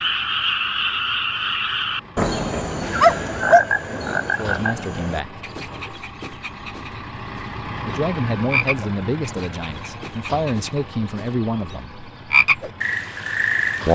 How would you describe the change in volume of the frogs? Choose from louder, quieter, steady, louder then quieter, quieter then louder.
quieter then louder.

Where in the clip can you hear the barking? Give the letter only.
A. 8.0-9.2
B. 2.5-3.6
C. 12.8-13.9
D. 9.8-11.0
B.